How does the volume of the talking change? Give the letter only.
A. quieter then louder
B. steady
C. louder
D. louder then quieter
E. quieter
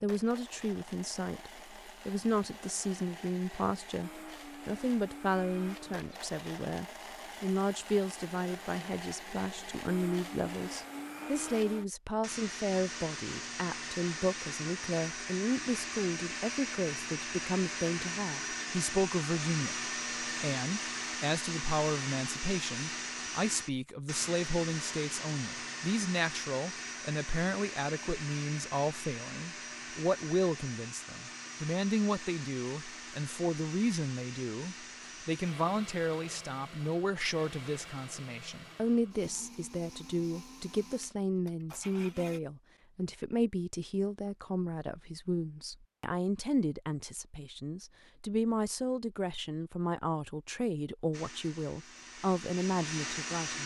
B.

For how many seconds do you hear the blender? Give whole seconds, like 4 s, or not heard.
45 s.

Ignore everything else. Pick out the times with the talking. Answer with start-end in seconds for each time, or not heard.
0.0-53.6.